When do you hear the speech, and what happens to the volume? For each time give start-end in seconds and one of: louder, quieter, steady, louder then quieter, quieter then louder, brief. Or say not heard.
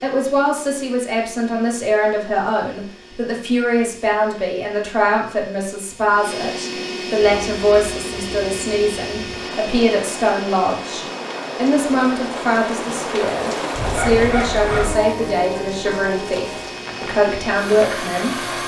0.0-18.4 steady.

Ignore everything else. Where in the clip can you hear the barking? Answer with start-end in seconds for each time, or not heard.
13.7-14.9.